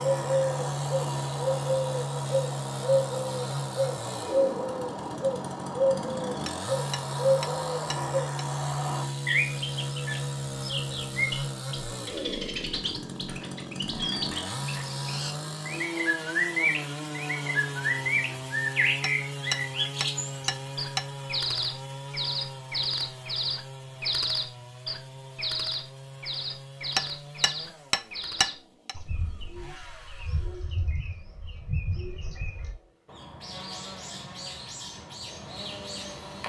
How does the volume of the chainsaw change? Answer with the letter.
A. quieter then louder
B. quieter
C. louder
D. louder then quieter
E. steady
B.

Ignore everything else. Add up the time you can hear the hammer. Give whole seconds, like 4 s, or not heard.
6 s.